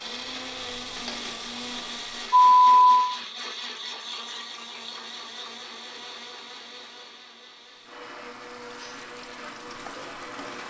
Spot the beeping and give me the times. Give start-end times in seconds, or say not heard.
2.4-3.1.